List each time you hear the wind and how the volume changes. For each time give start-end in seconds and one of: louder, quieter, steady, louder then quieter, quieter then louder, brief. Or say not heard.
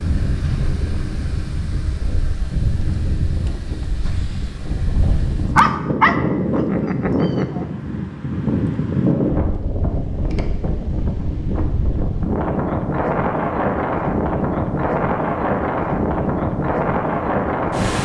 0.0-18.0 louder.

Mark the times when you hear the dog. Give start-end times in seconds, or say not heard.
5.5-7.7.